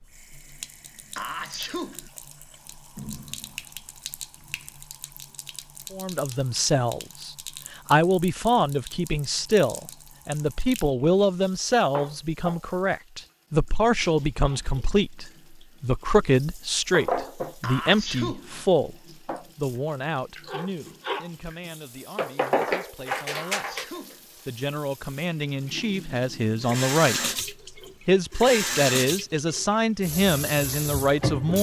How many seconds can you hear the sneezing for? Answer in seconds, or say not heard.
3 s.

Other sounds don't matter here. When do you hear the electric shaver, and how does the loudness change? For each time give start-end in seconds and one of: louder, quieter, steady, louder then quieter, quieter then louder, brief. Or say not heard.
not heard.